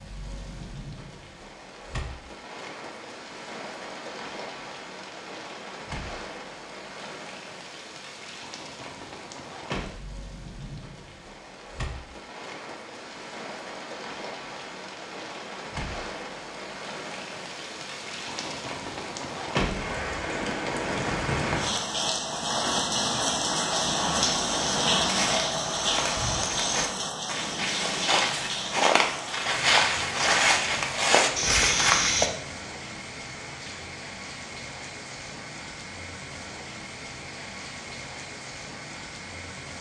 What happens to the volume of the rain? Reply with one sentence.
The loudness of the rain goes up, then down.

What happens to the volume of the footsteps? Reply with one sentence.
The volume of the footsteps goes up.